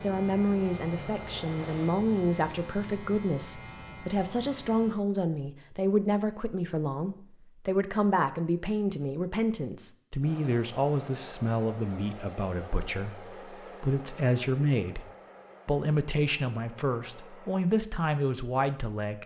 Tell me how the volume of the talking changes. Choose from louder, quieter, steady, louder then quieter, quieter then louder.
steady.